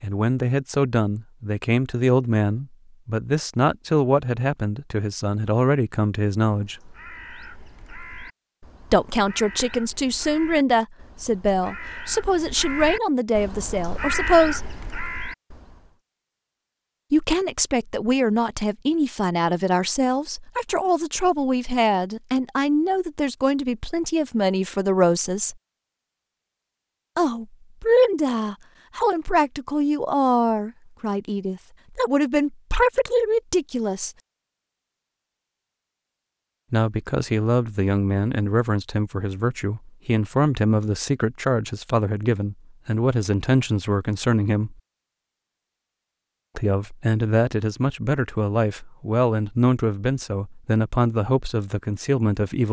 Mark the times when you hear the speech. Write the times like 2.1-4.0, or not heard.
0.0-6.8, 8.9-14.7, 17.1-25.6, 27.1-34.1, 36.7-44.8, 46.5-52.6.